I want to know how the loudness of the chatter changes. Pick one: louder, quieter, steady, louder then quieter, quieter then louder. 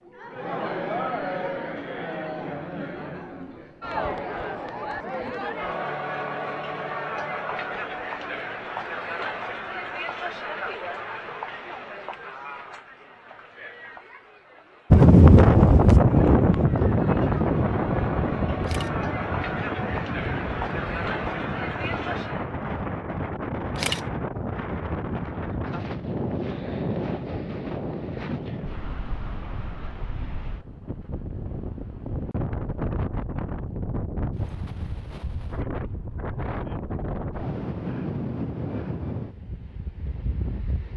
quieter then louder.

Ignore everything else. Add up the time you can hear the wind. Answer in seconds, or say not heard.
26 s.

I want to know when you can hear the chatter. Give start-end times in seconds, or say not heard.
0.0-22.5.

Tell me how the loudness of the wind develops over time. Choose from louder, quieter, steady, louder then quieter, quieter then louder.
quieter.